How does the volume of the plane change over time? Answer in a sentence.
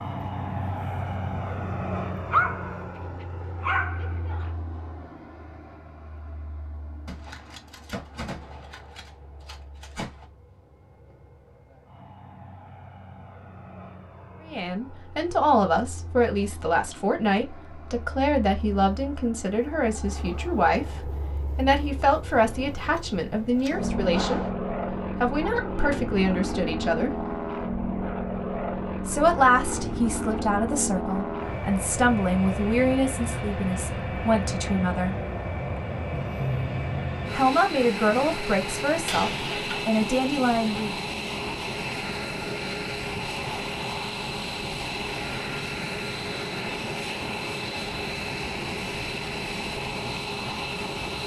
The volume of the plane goes down, then up.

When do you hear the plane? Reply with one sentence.
You can hear the plane from 0.0 to 51.2 s.